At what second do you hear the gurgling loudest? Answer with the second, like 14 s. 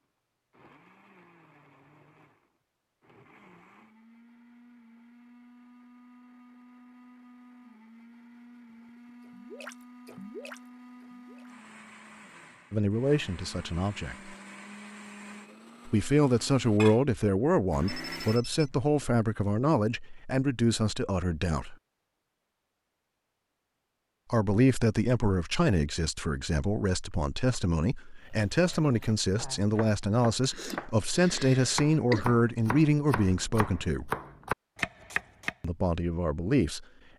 10 s.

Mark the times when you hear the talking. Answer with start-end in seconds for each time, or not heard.
12.7-14.3, 15.8-21.8, 24.3-34.1, 35.6-36.9.